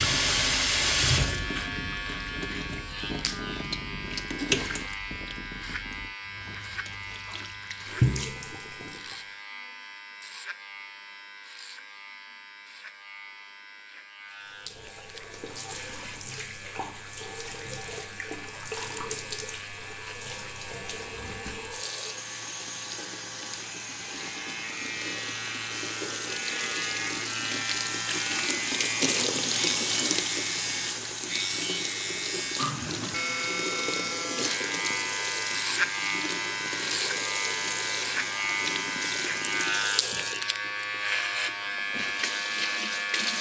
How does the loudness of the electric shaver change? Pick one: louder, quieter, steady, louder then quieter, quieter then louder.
quieter then louder.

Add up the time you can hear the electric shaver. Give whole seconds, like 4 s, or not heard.
43 s.